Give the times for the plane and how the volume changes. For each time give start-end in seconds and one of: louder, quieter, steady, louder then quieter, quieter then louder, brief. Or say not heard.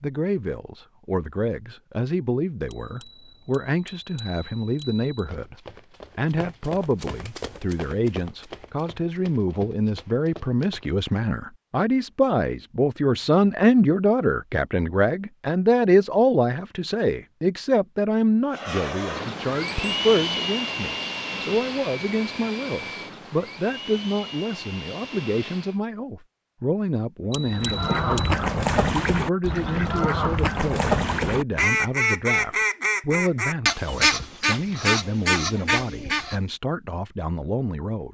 18.5-25.8 quieter.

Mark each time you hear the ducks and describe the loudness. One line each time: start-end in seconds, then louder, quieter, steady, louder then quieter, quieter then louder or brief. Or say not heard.
27.5-36.4 steady.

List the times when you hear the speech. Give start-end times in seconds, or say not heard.
0.0-5.5, 6.2-38.0.